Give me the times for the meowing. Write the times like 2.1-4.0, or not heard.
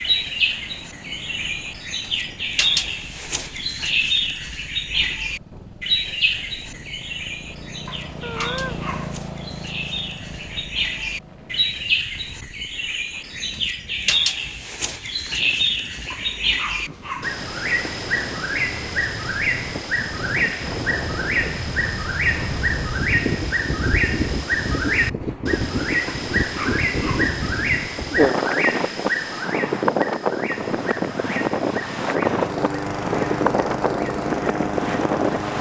8.2-8.8.